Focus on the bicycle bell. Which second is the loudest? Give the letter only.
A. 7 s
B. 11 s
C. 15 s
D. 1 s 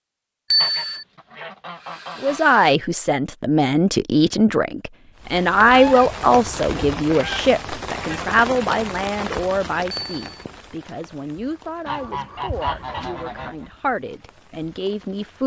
D.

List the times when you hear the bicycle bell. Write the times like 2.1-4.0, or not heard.
0.5-1.1, 9.9-10.3.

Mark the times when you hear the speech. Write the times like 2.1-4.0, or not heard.
2.2-15.4.